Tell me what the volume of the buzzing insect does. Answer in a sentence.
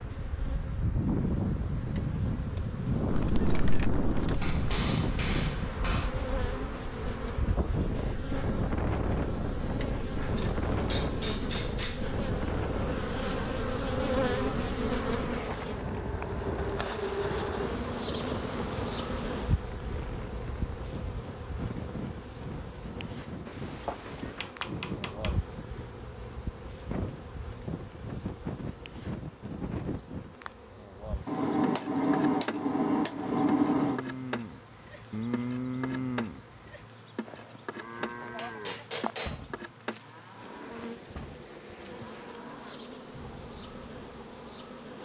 The volume of the buzzing insect goes up, then down.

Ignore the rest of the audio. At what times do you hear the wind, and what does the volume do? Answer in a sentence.
The wind can be heard from 0.0 to 30.4 s, getting quieter.